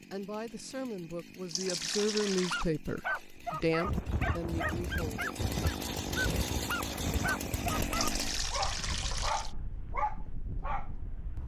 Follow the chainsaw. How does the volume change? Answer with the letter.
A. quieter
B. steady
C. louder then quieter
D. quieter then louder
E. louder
E.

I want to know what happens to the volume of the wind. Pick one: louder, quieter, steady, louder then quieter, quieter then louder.
quieter.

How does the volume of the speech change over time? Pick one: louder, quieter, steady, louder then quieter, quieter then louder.
louder then quieter.